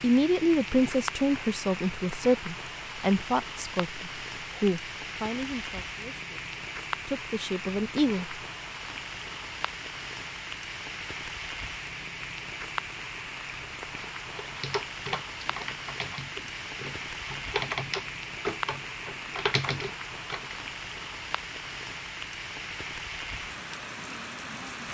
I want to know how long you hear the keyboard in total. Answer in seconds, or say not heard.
6 s.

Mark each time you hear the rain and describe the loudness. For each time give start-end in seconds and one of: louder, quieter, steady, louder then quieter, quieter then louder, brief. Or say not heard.
0.0-24.8 steady.